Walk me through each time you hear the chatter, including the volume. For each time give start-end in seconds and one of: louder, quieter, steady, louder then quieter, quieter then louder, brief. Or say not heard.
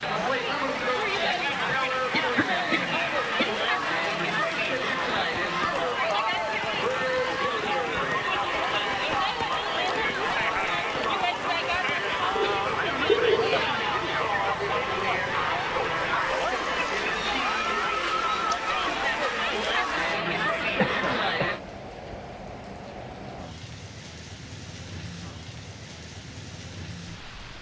0.0-21.6 steady.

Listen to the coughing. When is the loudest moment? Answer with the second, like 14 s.
13 s.